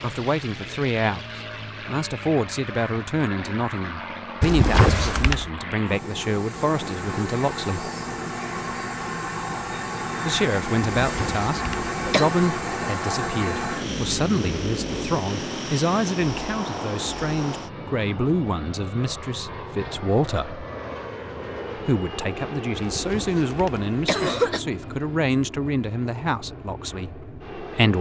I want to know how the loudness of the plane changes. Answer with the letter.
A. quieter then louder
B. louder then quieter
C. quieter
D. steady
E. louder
B.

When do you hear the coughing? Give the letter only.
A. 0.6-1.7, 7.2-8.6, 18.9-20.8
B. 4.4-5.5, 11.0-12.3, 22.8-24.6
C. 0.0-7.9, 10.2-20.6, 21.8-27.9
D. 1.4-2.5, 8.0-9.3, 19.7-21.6
B.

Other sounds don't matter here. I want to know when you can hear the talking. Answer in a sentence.
The talking can be heard from 0.0 to 7.9 s, from 10.2 to 20.6 s and from 21.8 to 27.9 s.